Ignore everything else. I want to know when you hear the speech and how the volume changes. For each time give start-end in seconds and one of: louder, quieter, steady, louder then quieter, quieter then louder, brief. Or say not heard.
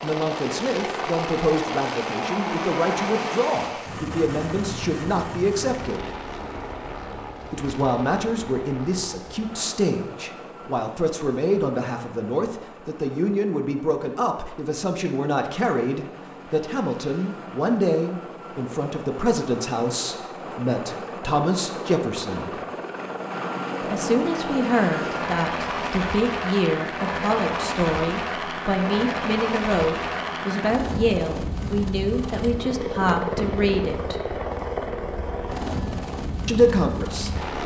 0.0-6.2 steady
7.5-22.6 steady
23.8-34.4 steady
36.5-37.6 brief.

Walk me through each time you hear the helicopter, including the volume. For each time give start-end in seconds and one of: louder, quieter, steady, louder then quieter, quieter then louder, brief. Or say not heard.
0.0-37.6 quieter then louder.